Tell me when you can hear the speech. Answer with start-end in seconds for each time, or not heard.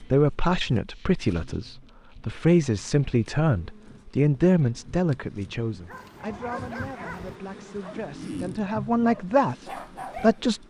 0.0-10.6.